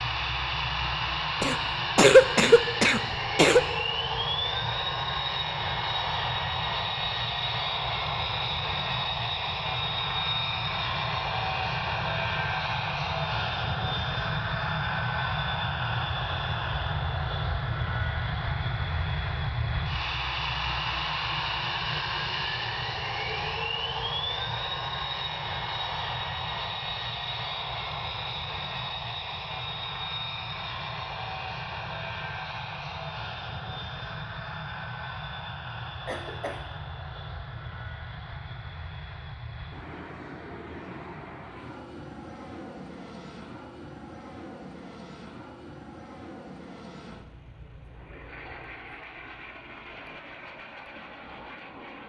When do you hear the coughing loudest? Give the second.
2 s.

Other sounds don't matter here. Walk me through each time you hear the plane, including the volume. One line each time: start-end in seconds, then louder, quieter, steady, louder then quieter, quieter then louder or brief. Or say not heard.
0.0-52.0 quieter.